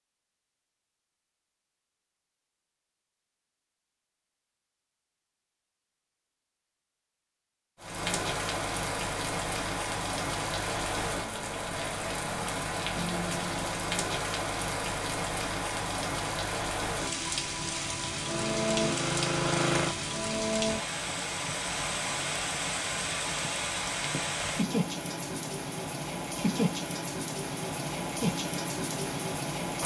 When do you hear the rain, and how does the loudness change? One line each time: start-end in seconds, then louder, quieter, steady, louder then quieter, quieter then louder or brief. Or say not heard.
7.8-29.8 steady.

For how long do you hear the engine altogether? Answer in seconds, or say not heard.
2 s.